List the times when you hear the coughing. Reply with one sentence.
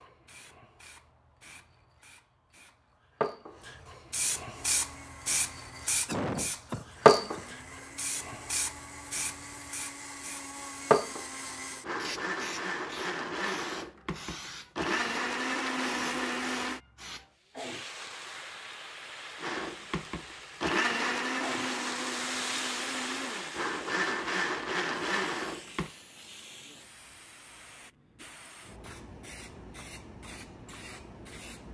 You can hear the coughing from 6.0 to 7.5 s.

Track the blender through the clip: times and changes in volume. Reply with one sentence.
You can hear the blender from 4.5 to 16.8 s, getting louder; and from 19.4 to 25.9 s, getting quieter then louder.